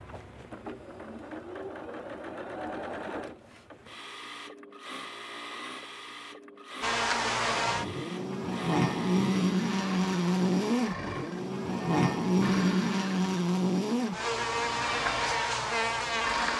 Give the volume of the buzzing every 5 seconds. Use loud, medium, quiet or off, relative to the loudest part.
off, loud, loud, loud.